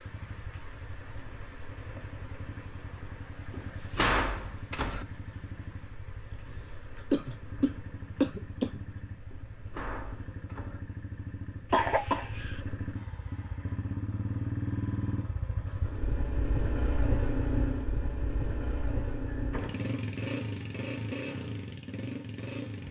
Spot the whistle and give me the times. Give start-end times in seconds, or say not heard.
not heard.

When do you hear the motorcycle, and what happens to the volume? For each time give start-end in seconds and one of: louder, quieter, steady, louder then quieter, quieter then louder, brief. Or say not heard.
0.0-22.8 louder.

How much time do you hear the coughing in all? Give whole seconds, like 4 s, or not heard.
3 s.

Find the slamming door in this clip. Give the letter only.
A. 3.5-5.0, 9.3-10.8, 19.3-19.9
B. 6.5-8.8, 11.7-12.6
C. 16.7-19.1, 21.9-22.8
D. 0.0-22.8
A.